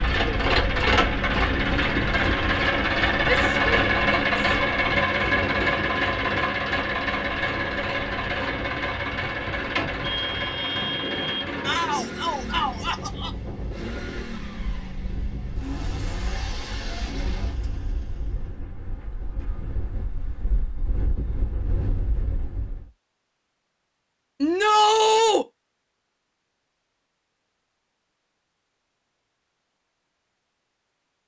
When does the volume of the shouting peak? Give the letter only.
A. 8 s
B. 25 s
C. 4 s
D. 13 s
B.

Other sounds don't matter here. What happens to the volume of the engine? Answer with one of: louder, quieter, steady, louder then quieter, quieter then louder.
quieter.